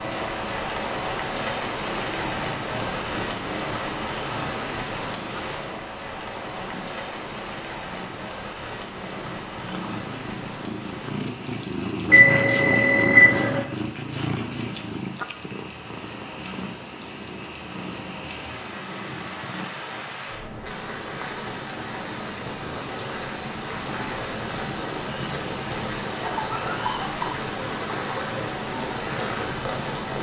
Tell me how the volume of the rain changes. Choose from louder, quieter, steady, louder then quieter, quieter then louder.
quieter then louder.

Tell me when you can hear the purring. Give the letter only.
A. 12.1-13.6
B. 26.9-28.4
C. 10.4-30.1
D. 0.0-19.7
D.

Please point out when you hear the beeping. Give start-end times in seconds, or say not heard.
12.1-13.6.